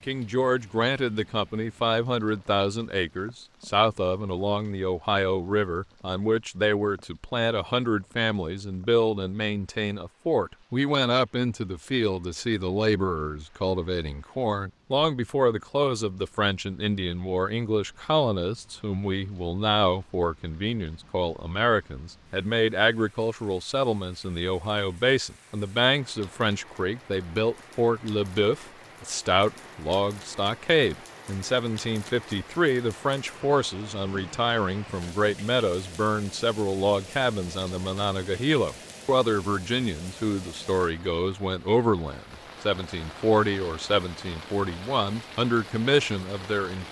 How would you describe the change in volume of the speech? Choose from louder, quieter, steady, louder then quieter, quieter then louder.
steady.